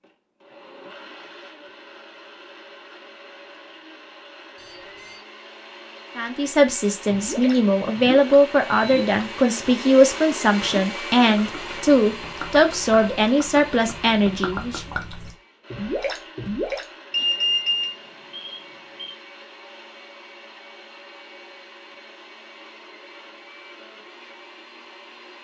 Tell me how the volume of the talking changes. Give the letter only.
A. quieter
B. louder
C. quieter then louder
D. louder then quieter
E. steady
E.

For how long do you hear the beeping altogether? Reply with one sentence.
The beeping can be heard for 3 seconds in total.